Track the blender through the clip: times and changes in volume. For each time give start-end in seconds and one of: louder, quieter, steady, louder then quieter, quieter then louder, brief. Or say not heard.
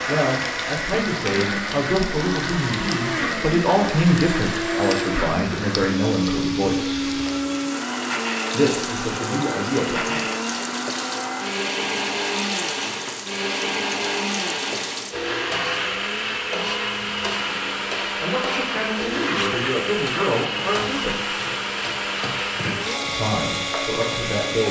0.0-24.6 steady.